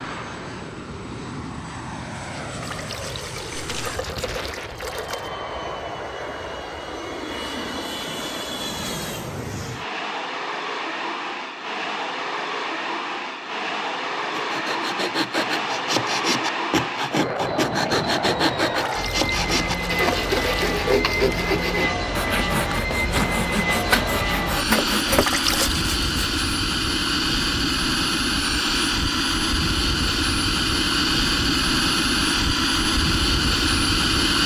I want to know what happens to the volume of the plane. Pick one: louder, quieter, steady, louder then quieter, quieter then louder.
louder.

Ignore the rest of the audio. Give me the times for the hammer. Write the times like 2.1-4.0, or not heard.
not heard.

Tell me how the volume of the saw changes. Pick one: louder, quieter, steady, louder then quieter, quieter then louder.
steady.